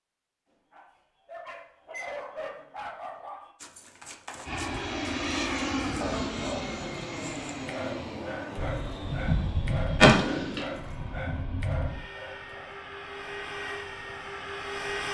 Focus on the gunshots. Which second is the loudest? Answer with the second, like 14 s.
10 s.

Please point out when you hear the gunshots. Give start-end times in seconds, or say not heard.
8.6-11.9.